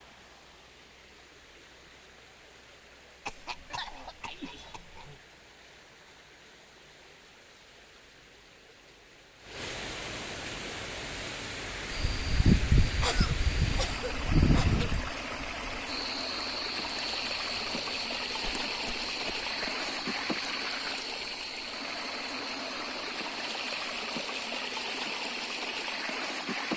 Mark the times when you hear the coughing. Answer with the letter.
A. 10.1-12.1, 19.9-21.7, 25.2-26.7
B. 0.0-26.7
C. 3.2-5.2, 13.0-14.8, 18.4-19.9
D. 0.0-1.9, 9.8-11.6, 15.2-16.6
C.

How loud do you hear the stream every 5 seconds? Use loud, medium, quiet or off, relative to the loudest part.
quiet, quiet, loud, loud, loud, loud.